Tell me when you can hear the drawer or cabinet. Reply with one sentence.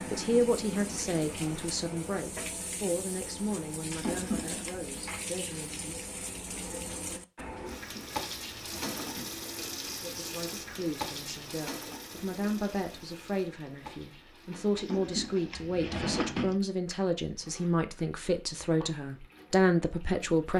You can hear the drawer or cabinet from 3.9 to 4.8 s, from 7.5 to 9.3 s and from 14.8 to 16.6 s.